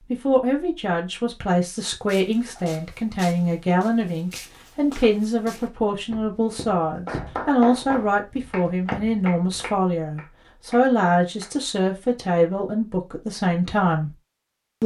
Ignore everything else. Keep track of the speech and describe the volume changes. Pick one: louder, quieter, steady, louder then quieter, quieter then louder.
steady.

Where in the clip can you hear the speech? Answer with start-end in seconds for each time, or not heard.
0.1-14.2.